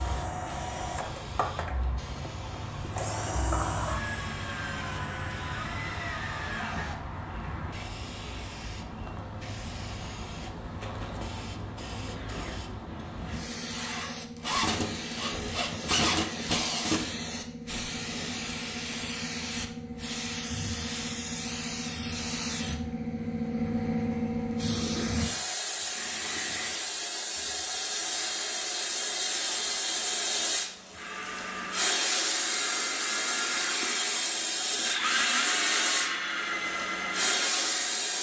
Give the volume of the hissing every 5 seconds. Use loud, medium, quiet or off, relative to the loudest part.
medium, medium, medium, medium, loud, loud, loud, loud.